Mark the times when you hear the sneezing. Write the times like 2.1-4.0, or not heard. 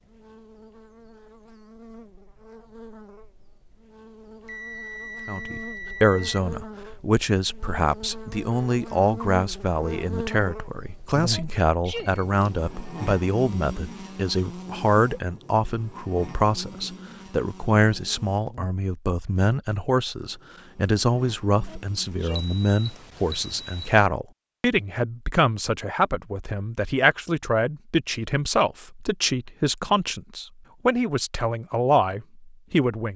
11.3-12.2, 21.6-22.5.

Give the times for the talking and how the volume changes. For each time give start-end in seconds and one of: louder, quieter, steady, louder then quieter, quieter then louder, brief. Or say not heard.
5.2-33.1 steady.